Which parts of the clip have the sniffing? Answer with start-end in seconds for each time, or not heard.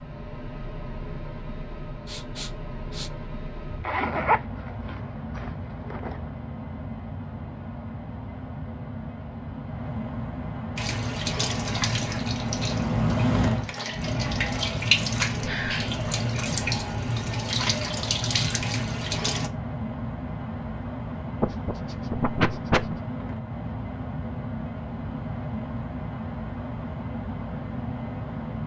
2.0-3.1, 21.4-23.0.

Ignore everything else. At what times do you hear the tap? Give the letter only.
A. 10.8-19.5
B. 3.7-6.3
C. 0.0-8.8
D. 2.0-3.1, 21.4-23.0
A.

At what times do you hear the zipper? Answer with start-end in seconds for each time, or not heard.
3.7-6.3.